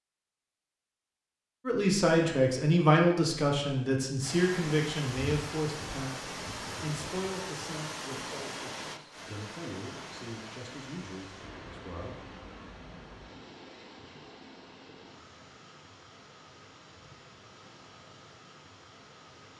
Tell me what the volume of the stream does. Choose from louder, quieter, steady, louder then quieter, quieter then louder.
quieter.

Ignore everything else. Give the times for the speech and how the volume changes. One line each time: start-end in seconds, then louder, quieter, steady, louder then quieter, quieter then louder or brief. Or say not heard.
1.6-12.2 quieter.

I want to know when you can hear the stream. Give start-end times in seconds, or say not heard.
4.2-19.5.